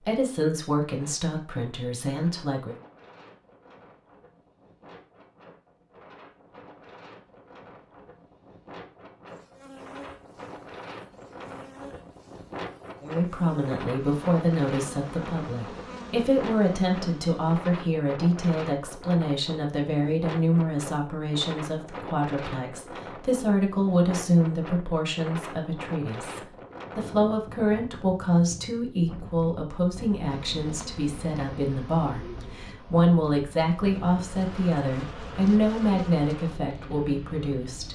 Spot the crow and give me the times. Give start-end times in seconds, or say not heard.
not heard.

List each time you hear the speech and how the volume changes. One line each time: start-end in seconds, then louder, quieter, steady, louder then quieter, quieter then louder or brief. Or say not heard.
0.1-2.8 brief
13.0-37.8 steady.